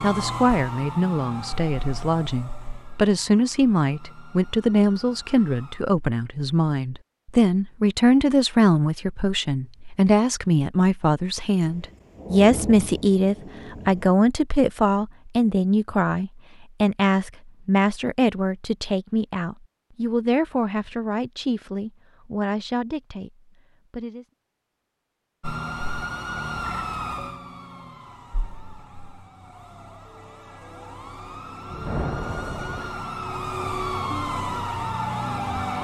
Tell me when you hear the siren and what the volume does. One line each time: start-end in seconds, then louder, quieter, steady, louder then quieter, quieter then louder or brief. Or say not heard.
0.0-5.8 quieter
25.4-35.7 quieter then louder.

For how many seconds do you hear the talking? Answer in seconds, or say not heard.
24 s.